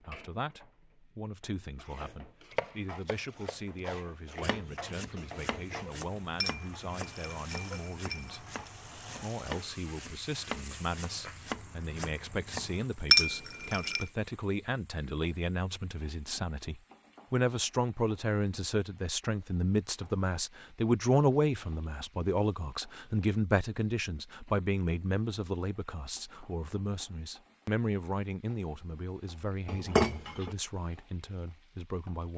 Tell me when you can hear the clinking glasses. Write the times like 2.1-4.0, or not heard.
6.4-8.7, 13.1-14.1, 29.6-30.5.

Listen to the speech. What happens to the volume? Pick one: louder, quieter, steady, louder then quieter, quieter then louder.
louder then quieter.